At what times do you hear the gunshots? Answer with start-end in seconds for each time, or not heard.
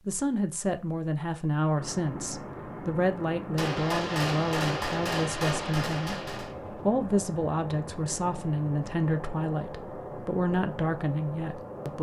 3.5-6.5.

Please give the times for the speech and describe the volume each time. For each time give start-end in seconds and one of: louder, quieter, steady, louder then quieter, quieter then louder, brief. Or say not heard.
0.1-11.9 steady.